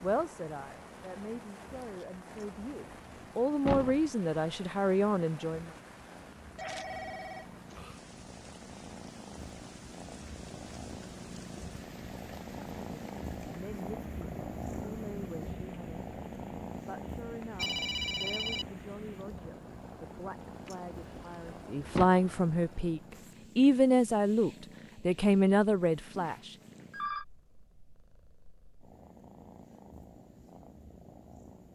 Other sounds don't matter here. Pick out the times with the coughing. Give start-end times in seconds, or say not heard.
not heard.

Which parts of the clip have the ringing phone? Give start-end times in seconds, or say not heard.
6.5-7.8, 17.4-18.7, 25.8-27.2.